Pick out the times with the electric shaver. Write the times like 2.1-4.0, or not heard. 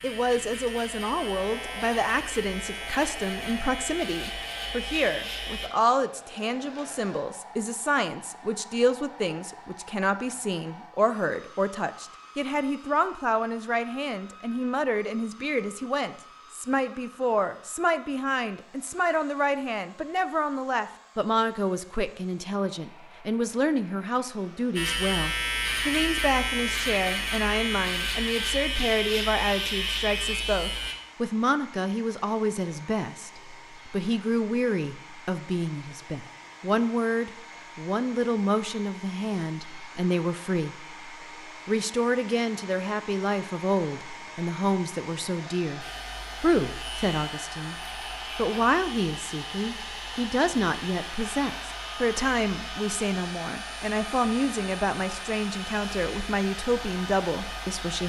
0.0-5.7, 24.8-30.9, 45.8-58.0.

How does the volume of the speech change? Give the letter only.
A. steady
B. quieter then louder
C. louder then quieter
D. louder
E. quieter
A.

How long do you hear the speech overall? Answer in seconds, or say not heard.
58 s.